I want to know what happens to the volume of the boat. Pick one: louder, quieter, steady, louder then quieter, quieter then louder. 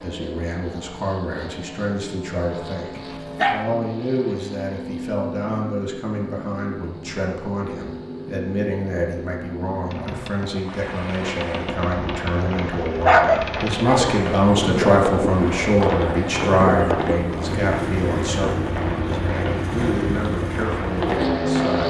louder.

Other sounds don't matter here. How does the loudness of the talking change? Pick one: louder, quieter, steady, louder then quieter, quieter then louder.
louder then quieter.